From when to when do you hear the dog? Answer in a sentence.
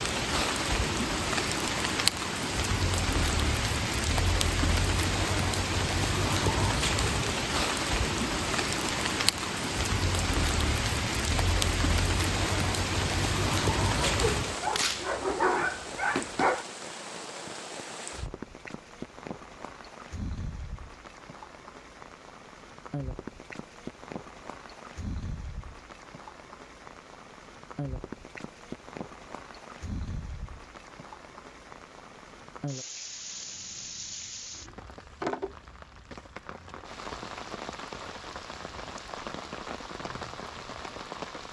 You can hear the dog from 14.0 to 16.6 s.